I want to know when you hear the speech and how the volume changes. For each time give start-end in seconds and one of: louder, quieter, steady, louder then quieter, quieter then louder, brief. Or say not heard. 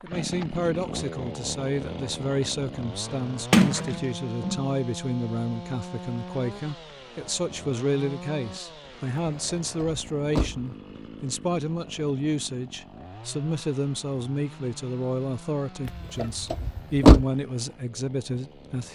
0.0-18.8 steady.